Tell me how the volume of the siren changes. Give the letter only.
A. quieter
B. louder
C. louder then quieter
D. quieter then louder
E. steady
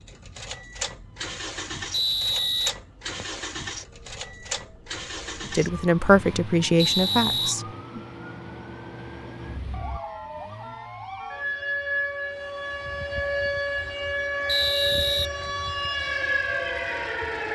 B.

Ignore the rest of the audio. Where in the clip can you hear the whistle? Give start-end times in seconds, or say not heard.
1.9-3.4, 6.8-7.5, 14.4-15.3.